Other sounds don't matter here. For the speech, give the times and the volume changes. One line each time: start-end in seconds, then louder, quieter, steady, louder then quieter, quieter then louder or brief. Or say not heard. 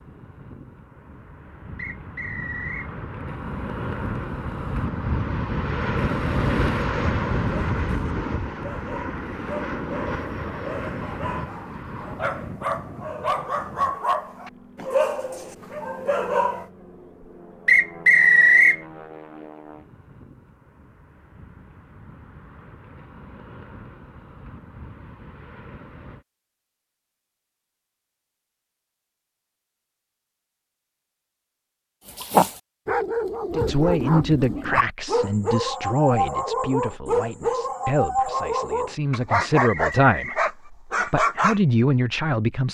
33.5-42.7 quieter then louder.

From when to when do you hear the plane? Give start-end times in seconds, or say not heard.
0.0-26.2.